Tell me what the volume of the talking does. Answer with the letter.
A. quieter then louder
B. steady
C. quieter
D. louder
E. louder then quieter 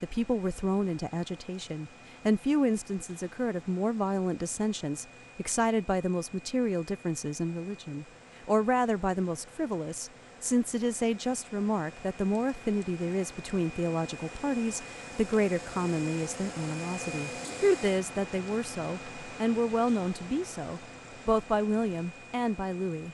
B.